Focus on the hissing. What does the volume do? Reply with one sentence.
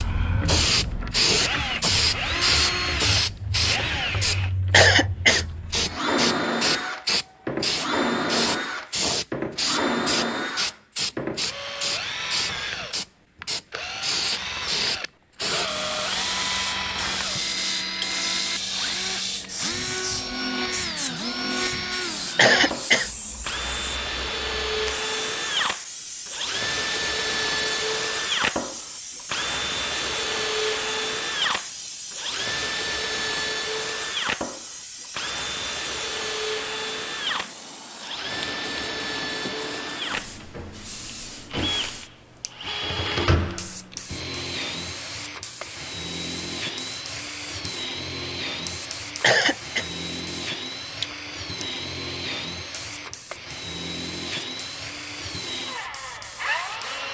The loudness of the hissing goes down.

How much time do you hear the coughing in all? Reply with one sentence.
The coughing can be heard for 2 seconds in total.